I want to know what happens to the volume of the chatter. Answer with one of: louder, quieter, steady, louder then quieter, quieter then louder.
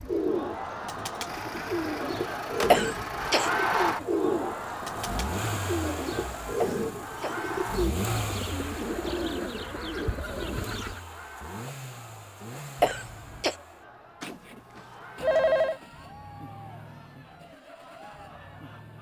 quieter.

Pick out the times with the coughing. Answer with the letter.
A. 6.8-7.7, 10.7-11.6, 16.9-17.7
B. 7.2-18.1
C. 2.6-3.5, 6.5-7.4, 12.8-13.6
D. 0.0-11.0
C.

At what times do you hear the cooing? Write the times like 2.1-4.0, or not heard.
0.0-11.0.